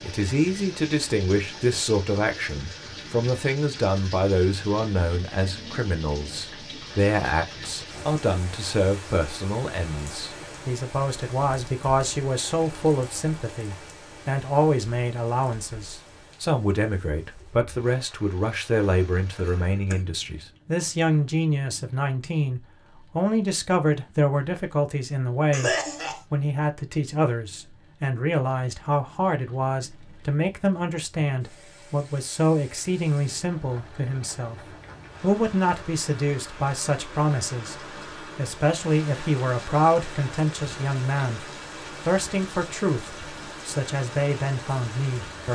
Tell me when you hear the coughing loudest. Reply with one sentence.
The loudest moment of the coughing is at 26 seconds.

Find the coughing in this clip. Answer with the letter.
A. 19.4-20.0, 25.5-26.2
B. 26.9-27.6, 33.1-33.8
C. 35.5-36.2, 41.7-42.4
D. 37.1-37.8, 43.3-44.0
A.